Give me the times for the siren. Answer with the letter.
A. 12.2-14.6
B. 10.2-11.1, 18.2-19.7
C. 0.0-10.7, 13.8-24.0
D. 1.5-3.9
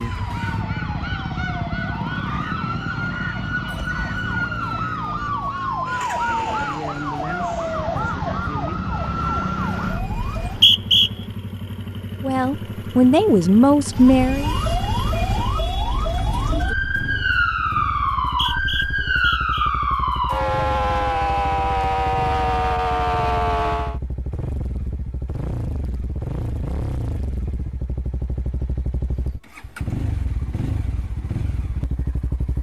C.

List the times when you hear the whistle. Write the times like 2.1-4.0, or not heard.
10.2-11.1, 18.2-19.7.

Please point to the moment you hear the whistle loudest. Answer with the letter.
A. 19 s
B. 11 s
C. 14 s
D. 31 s
B.